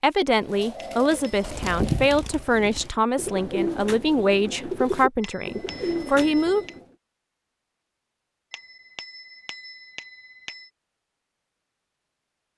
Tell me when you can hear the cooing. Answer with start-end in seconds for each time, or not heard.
0.4-6.8.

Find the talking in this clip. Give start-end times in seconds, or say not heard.
0.0-6.7.